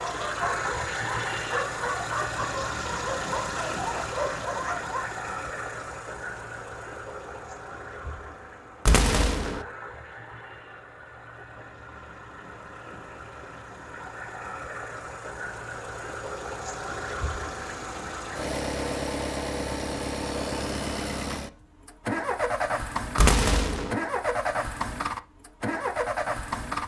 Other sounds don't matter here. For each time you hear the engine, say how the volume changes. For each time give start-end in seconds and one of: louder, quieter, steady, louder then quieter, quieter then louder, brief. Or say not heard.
0.0-26.8 quieter then louder.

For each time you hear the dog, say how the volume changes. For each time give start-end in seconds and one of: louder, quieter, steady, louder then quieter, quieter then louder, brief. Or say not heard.
0.0-5.1 steady.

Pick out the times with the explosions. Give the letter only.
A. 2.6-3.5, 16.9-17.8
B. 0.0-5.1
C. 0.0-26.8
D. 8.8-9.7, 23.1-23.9
D.